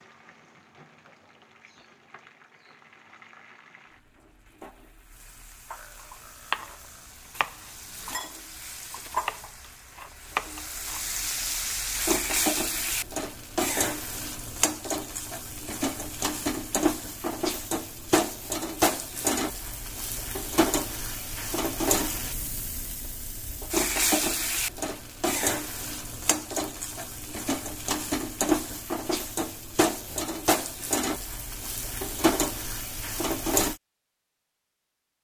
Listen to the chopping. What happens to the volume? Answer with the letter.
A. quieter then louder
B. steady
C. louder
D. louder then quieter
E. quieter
A.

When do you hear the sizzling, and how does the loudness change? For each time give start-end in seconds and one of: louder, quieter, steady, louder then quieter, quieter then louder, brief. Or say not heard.
0.0-33.8 louder.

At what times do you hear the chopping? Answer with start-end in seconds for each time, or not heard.
6.5-11.2.